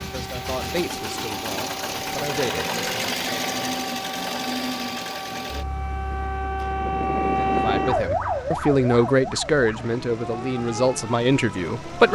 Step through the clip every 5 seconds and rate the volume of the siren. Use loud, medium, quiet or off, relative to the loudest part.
medium, loud, medium.